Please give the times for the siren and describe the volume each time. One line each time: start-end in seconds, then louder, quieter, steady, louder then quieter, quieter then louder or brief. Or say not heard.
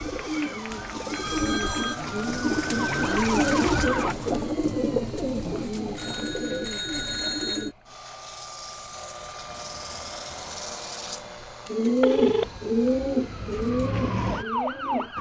0.0-4.2 louder
12.2-15.1 brief.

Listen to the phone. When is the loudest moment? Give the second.
12 s.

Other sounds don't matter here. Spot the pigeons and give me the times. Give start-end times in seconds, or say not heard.
0.0-7.8, 11.7-15.1.